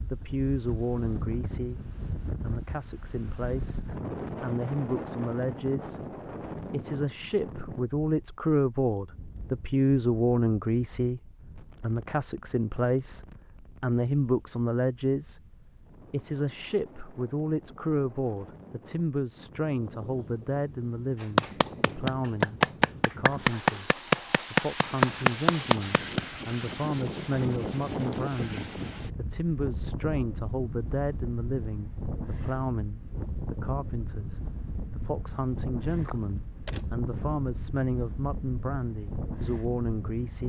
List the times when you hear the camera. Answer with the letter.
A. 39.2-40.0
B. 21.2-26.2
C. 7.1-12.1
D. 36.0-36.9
D.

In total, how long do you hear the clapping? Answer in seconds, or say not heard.
5 s.